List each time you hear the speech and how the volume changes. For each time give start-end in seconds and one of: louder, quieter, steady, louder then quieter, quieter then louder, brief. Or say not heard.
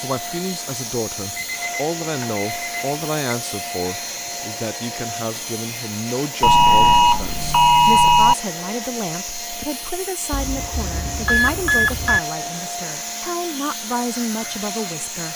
0.0-15.3 steady.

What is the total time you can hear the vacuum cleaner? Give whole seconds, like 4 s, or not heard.
15 s.